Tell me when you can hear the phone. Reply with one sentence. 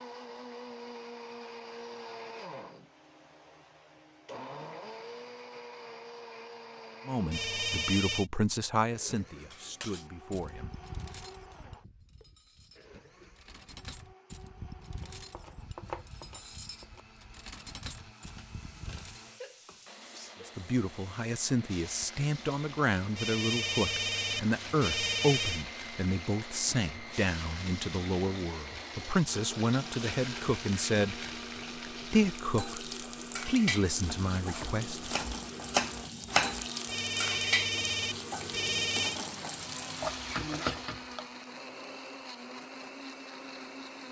The phone can be heard from 7.3 to 8.2 s, from 23.1 to 25.6 s and from 36.9 to 39.2 s.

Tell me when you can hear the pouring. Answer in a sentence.
You can't hear the pouring here.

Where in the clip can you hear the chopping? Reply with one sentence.
The chopping can be heard from 15.0 to 17.0 s and from 34.1 to 36.6 s.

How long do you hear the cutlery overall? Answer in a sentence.
The cutlery can be heard for 10 seconds in total.